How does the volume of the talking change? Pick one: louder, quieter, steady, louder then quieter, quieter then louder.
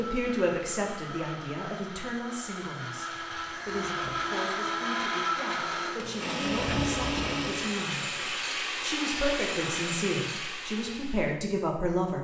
quieter then louder.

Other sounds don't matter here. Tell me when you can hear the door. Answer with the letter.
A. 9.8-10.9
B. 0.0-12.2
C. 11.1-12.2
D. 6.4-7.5
D.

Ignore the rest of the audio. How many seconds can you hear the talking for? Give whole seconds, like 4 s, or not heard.
12 s.